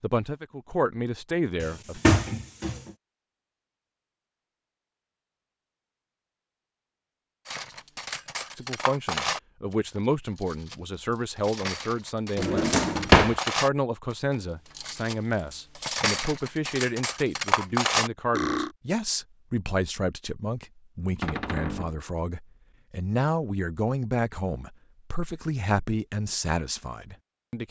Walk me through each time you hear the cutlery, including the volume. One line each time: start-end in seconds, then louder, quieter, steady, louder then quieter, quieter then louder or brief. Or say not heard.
7.5-18.7 quieter then louder.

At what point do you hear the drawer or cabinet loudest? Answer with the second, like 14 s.
13 s.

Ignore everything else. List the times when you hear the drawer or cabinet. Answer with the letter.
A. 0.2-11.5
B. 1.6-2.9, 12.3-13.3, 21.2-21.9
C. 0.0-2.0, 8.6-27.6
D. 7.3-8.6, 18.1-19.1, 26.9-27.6
B.